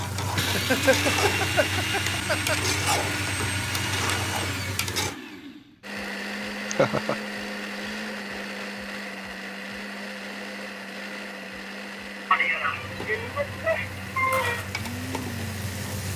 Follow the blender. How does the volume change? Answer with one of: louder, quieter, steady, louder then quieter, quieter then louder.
quieter.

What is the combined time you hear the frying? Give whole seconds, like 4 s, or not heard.
9 s.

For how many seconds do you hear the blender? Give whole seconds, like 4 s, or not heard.
16 s.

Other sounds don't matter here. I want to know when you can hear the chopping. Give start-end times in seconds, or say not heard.
not heard.